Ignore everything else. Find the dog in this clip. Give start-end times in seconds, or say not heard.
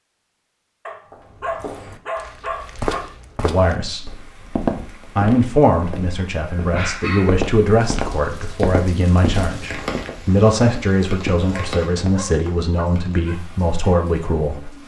0.8-3.0, 6.7-7.5, 11.4-13.3.